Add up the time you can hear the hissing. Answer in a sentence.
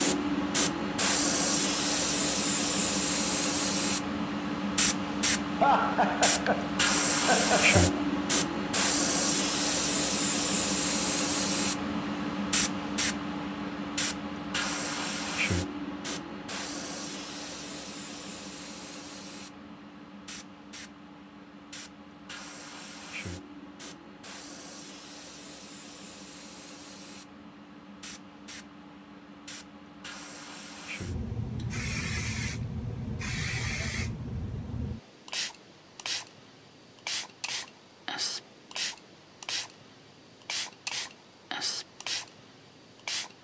The hissing can be heard for 43 seconds in total.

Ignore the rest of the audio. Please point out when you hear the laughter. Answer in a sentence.
The laughter can be heard from 5.6 to 8.0 s.